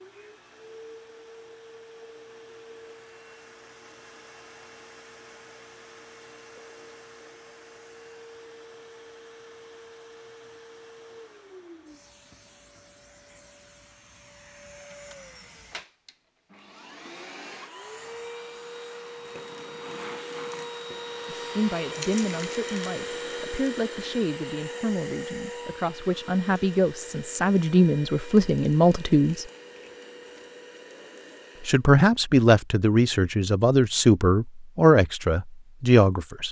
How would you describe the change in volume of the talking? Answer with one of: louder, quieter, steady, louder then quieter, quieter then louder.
louder.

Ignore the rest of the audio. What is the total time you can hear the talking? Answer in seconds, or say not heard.
13 s.